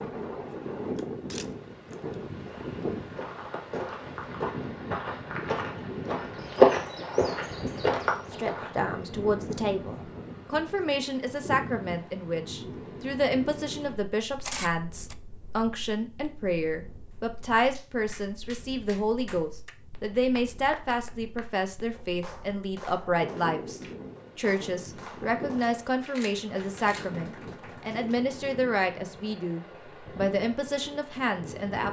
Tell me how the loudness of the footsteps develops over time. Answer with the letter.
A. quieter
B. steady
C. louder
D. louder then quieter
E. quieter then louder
D.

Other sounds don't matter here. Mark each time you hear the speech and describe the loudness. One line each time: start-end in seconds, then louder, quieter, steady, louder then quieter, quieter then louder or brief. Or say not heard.
8.3-31.8 steady.